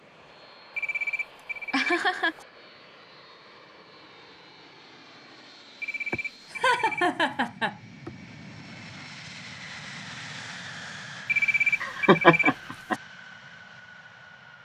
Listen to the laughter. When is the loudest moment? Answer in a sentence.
The volume of the laughter peaks at 12 seconds.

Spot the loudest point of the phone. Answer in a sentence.
The loudest moment of the phone is at 12 seconds.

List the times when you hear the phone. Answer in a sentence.
You can hear the phone from 0.8 to 2.5 s, from 5.8 to 7.5 s and from 11.2 to 13.0 s.